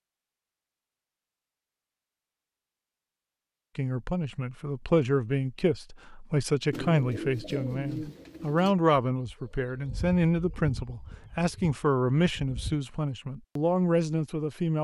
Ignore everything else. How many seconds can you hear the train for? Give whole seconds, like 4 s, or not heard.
not heard.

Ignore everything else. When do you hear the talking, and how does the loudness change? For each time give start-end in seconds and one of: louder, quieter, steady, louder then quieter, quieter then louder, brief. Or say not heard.
3.8-14.7 steady.